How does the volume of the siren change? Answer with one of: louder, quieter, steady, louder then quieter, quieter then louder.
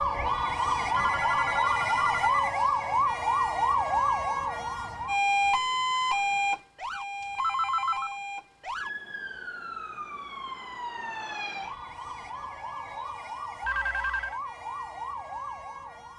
quieter.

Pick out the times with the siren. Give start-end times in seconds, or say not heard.
0.0-16.1.